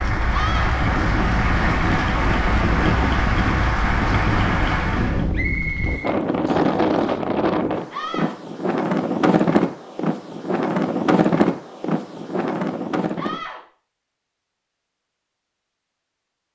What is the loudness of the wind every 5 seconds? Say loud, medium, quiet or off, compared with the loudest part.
loud, loud, loud, off.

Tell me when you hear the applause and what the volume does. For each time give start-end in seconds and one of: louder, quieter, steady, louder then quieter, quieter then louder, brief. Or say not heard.
0.0-5.3 steady.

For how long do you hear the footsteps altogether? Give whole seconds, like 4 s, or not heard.
not heard.